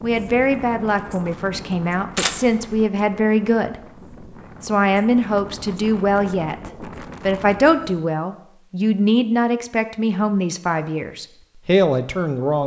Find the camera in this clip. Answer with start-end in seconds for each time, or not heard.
2.1-2.9.